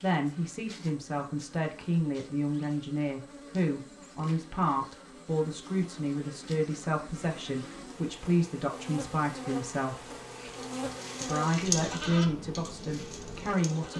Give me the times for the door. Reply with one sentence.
The door can't be heard in this clip.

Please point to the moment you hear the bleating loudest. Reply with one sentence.
The loudest moment of the bleating is at 12 seconds.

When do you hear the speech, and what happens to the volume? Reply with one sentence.
The speech can be heard from 0.0 to 10.1 s, at a steady volume; and briefly from 11.2 to 13.9 s.